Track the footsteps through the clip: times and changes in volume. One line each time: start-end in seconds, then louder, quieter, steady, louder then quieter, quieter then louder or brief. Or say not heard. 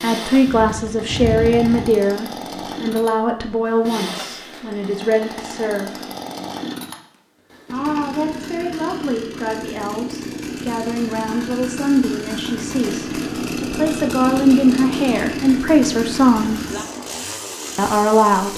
not heard.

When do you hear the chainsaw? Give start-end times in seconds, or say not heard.
0.0-18.5.